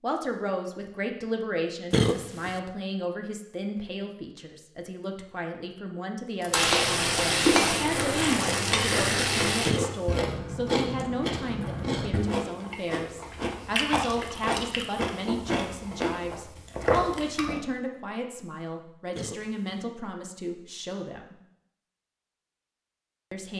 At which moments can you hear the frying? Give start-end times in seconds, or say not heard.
6.5-9.7.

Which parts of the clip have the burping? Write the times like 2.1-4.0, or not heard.
1.9-2.6, 9.7-10.2, 19.1-19.8.